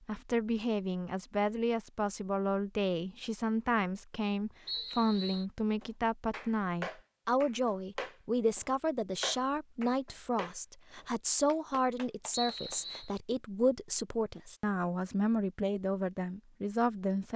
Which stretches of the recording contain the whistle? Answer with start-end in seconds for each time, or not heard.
4.7-5.5, 12.3-13.1.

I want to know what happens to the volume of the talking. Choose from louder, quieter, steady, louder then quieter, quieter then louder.
steady.